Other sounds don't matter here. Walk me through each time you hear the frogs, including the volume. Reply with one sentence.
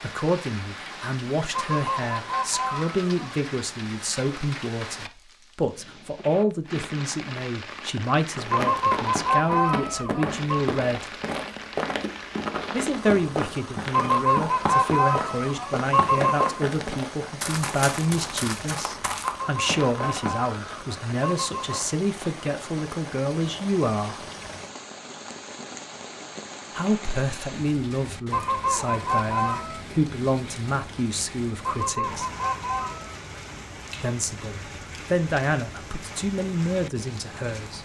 The frogs can't be heard in this clip.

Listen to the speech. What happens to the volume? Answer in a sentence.
The volume of the speech stays about the same.